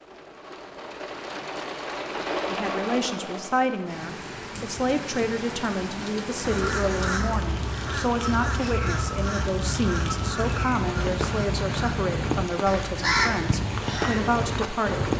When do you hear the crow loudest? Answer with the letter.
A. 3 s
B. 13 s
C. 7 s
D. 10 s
B.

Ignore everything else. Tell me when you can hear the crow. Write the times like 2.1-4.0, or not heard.
6.4-15.1.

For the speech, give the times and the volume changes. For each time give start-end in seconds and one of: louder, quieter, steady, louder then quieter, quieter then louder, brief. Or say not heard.
2.5-15.1 steady.